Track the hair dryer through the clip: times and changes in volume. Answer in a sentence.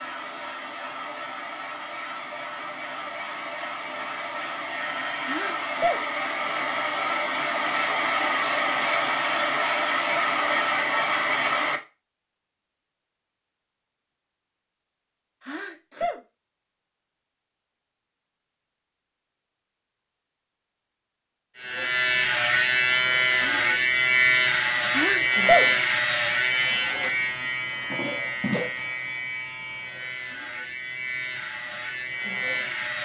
You can hear the hair dryer from 0.0 to 11.8 s, getting louder.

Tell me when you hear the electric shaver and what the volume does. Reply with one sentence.
You can hear the electric shaver from 21.6 to 32.9 s, getting quieter.